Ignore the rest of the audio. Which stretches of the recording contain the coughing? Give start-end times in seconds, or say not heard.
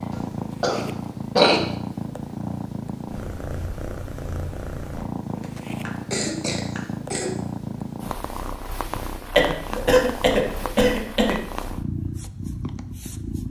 0.1-1.6, 5.3-7.3, 9.3-11.3.